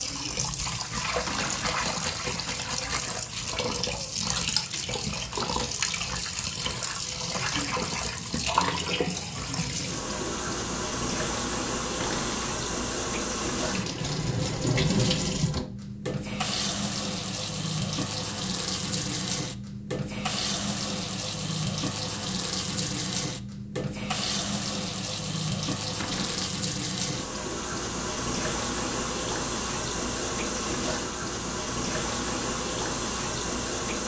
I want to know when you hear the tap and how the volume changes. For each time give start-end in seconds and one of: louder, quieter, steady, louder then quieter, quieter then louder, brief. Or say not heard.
0.0-34.0 steady.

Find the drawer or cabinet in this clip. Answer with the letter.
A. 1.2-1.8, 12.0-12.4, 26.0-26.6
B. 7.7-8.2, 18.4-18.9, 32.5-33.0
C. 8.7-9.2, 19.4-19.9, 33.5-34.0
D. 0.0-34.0
A.